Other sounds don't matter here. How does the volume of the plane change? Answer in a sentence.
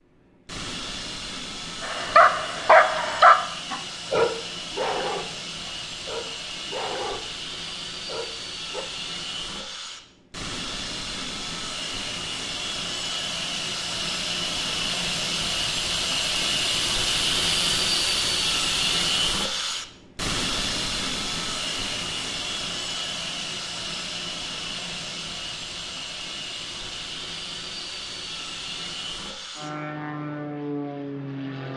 The loudness of the plane goes up, then down.